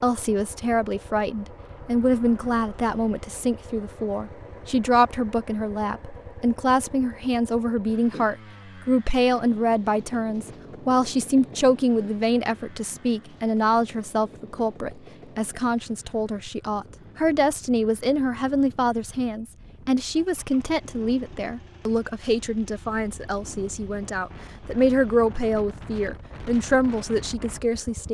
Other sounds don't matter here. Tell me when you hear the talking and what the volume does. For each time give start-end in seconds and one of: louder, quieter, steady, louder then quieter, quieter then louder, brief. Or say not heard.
0.0-28.0 steady.